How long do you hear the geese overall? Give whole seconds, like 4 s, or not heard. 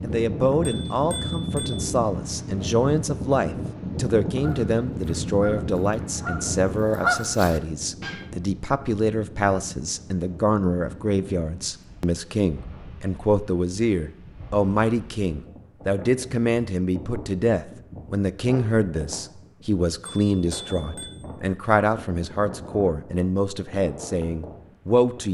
4 s.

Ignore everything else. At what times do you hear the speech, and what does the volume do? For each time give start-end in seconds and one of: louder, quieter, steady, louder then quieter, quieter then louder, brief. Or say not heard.
0.0-25.2 steady.